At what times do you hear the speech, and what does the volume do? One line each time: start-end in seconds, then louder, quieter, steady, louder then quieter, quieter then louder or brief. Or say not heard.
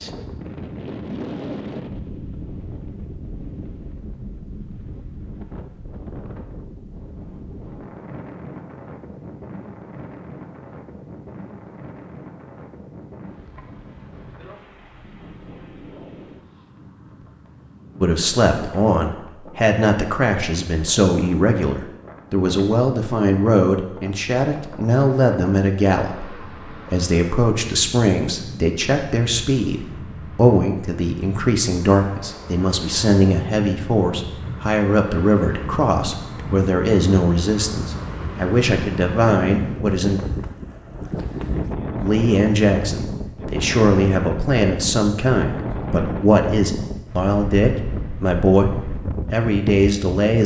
18.0-40.2 steady
42.0-50.4 steady.